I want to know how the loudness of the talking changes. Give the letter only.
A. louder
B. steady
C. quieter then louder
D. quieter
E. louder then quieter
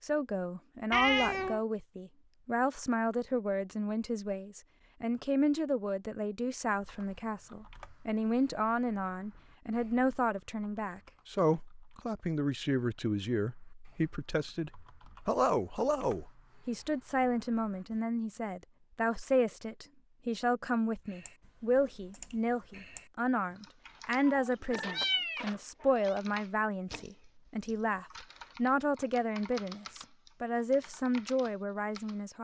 B.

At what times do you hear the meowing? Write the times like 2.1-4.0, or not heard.
0.9-1.6, 24.2-26.1.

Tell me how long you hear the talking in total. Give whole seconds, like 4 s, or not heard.
32 s.